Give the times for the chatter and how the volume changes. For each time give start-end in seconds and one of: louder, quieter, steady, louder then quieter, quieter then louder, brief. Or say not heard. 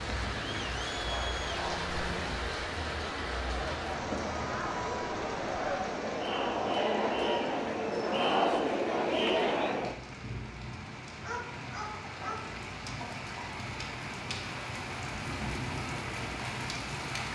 0.0-9.9 louder.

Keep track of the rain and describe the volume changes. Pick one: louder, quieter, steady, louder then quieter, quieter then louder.
quieter then louder.